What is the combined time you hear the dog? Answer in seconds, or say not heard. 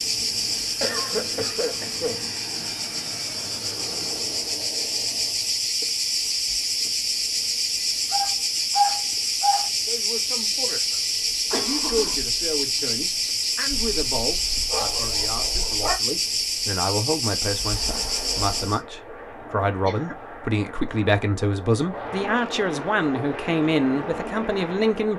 4 s.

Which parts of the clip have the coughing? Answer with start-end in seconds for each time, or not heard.
0.8-2.2, 11.5-12.2, 19.4-20.1.